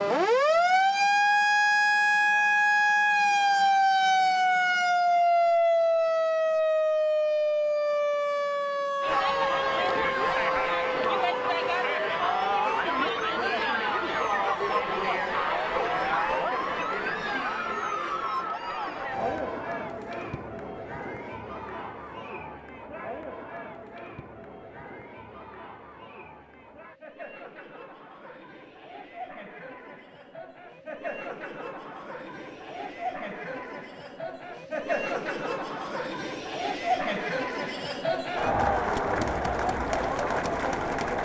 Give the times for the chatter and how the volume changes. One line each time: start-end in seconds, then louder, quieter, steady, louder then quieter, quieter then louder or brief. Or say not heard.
9.0-41.2 quieter then louder.